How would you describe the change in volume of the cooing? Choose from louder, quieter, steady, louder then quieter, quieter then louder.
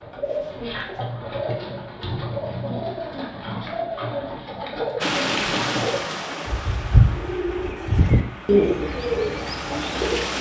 louder.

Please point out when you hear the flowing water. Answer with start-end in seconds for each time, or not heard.
5.0-10.3.